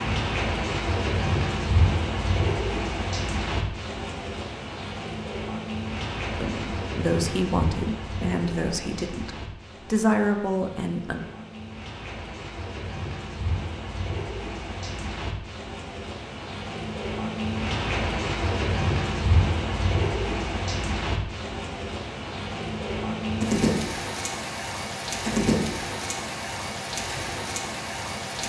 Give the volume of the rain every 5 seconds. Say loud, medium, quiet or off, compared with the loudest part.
loud, medium, medium, loud, loud, loud.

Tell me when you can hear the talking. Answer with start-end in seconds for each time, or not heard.
6.3-11.2.